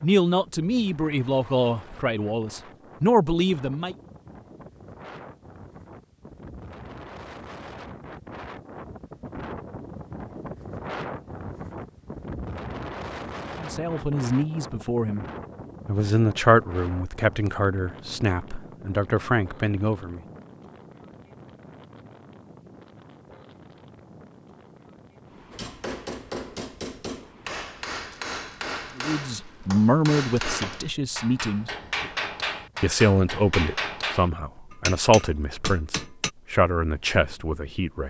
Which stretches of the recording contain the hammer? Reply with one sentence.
The hammer can be heard from 25.5 to 36.3 s.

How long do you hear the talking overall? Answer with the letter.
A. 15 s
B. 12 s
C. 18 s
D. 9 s
C.